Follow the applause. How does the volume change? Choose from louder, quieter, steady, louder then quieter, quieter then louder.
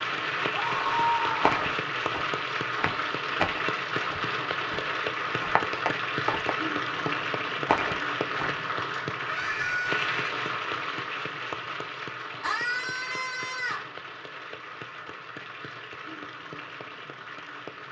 quieter.